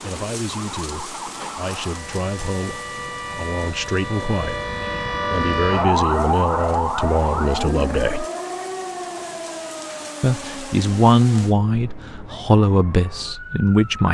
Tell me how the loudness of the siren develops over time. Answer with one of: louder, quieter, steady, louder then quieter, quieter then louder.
louder then quieter.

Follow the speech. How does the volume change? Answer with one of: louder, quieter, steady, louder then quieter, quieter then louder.
louder.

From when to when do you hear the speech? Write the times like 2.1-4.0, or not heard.
0.0-8.2, 10.2-14.0.